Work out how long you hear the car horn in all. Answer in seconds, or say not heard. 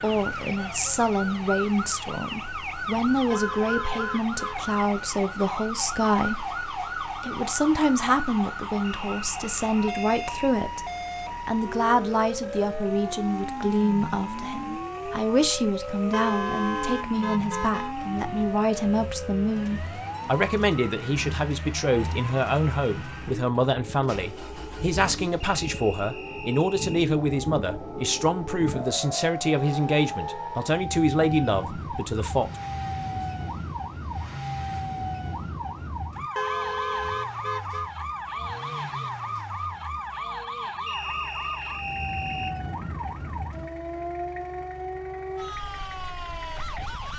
5 s.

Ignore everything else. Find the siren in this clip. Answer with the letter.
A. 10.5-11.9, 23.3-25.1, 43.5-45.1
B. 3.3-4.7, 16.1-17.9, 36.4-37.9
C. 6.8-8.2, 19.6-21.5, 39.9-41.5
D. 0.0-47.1
D.